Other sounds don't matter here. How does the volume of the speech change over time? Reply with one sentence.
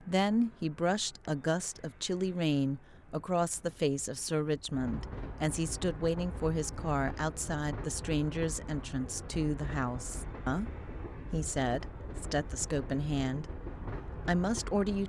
The volume of the speech stays about the same.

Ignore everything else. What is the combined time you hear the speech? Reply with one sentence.
The speech can be heard for 15 seconds in total.